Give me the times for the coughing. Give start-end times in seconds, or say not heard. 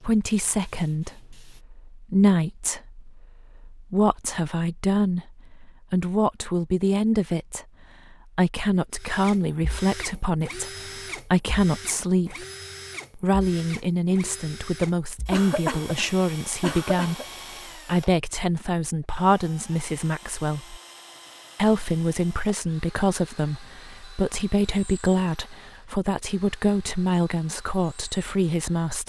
15.3-17.2.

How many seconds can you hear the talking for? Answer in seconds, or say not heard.
27 s.